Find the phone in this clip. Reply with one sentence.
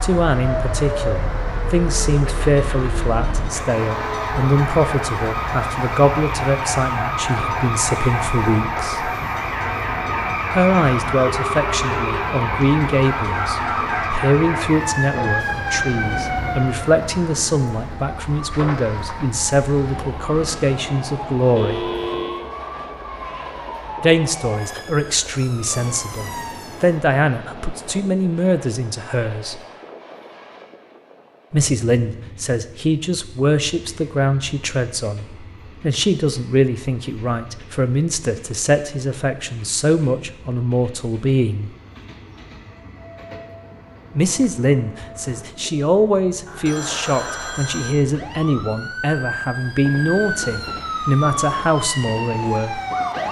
The phone can be heard from 11.3 to 12.1 s, from 21.6 to 22.5 s and from 46.6 to 48.0 s.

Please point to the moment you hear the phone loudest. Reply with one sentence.
The volume of the phone peaks at 22 seconds.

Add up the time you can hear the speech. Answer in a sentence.
You can hear the speech for 45 seconds altogether.